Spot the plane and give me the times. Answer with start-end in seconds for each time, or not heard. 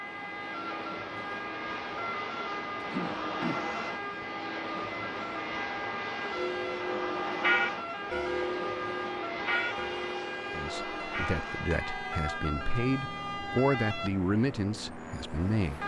0.0-15.8.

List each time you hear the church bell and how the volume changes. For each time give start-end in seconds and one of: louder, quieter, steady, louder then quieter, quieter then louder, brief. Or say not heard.
6.3-12.4 quieter.